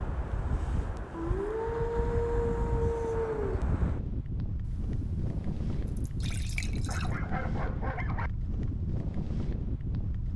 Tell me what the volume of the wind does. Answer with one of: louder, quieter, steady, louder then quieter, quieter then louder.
steady.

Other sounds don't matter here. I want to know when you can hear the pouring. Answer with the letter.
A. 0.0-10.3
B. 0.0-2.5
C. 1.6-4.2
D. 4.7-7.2
D.